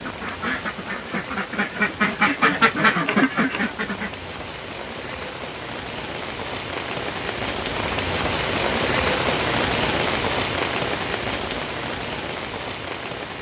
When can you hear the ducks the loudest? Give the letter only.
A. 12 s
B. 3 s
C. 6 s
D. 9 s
B.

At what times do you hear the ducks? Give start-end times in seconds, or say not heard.
0.0-4.1.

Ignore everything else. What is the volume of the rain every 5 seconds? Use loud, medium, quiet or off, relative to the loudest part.
medium, loud, loud.